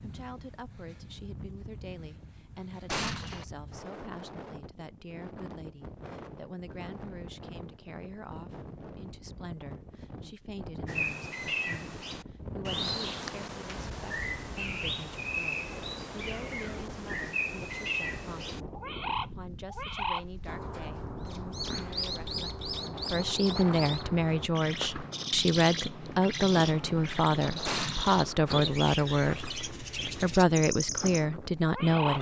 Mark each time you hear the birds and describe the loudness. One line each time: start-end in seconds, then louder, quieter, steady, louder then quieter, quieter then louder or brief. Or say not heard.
10.8-32.1 steady.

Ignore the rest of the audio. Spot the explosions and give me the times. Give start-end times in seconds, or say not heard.
2.9-3.5, 27.6-28.2.